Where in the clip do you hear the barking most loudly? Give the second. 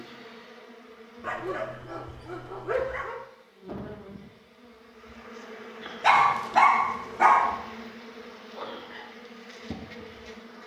7 s.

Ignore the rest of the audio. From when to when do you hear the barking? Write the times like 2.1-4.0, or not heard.
1.2-3.2, 6.0-7.5.